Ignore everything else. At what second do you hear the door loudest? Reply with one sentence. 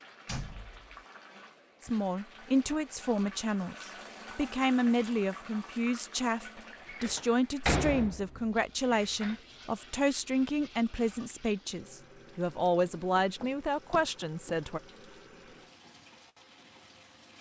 The volume of the door peaks at 8 seconds.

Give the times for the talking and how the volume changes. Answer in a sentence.
You can hear the talking from 1.8 to 14.8 s, at a steady volume.